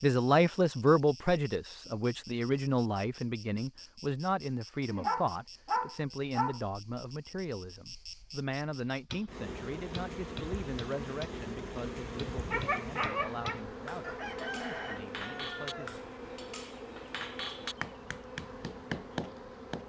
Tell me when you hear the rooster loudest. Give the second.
15 s.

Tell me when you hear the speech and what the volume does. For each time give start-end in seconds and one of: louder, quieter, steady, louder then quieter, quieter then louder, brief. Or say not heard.
0.0-16.0 quieter.